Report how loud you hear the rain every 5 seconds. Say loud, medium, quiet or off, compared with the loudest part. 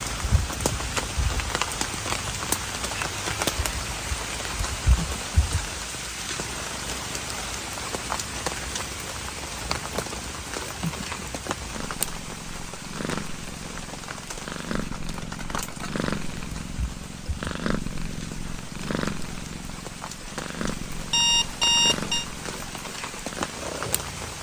loud, loud, medium, medium, medium.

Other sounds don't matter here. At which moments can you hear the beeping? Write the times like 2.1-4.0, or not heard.
21.1-22.2.